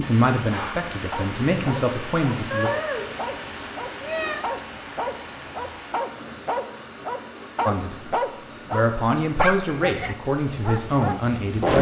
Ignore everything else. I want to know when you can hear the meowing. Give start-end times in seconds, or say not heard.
2.5-3.3, 4.0-4.4.